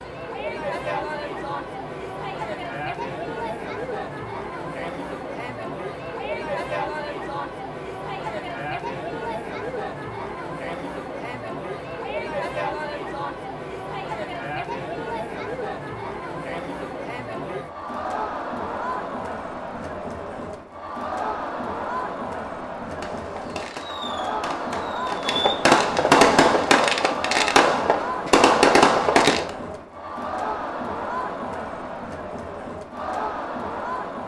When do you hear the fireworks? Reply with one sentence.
You can hear the fireworks from 22.9 to 29.5 s.